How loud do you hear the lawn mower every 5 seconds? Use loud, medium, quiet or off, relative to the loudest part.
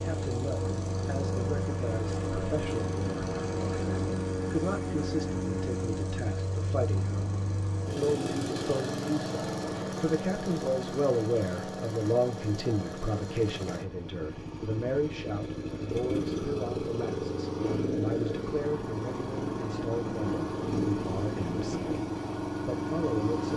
loud, loud, medium, loud, loud.